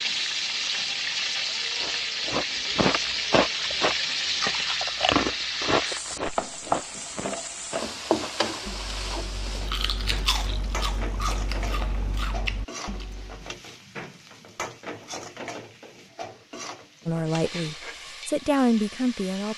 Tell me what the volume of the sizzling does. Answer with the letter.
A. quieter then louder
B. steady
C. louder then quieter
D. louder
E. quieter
E.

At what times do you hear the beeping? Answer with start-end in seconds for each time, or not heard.
not heard.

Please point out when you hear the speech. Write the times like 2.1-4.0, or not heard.
17.1-19.5.